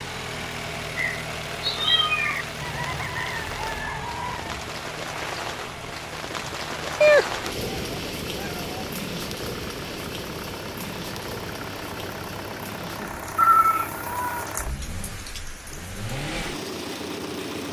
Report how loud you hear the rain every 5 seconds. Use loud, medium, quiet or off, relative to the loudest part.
medium, loud, medium, medium.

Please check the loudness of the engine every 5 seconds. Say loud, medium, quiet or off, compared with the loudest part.
loud, medium, loud, loud.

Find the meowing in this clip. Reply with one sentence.
You can hear the meowing from 0.9 to 2.5 s, from 7.0 to 8.7 s and from 13.3 to 14.4 s.